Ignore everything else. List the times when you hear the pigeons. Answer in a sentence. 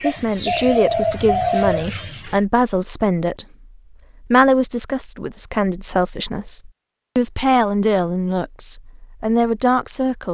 You can hear the pigeons from 0.0 to 2.4 s.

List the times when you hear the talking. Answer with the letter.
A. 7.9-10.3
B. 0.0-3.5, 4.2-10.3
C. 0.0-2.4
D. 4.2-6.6
B.